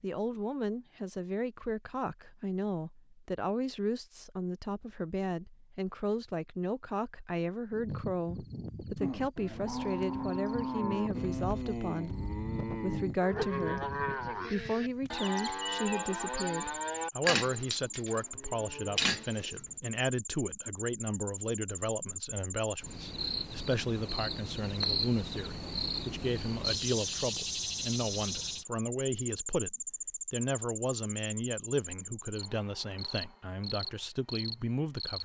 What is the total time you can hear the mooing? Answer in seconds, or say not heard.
11 s.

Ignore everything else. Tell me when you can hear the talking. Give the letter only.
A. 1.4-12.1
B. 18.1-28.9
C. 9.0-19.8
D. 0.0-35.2
D.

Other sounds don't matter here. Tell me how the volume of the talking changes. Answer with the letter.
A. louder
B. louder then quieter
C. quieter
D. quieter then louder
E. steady
E.